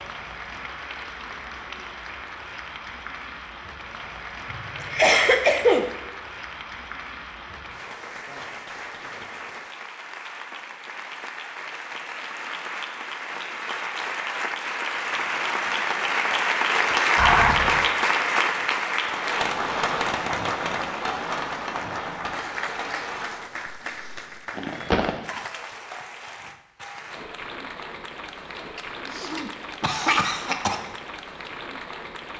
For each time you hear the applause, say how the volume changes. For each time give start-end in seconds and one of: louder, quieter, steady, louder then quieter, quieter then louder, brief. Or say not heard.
0.0-32.3 louder then quieter.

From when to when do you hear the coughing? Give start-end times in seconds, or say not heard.
4.5-5.8, 17.1-17.8, 28.8-30.8.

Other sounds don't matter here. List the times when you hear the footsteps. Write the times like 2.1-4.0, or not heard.
not heard.